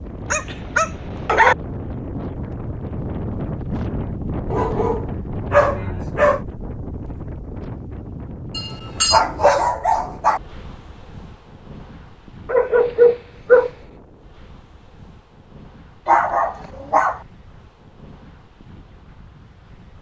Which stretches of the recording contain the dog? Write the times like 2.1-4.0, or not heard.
0.3-1.6, 4.5-6.4, 8.6-10.4, 12.4-13.7, 16.1-17.2.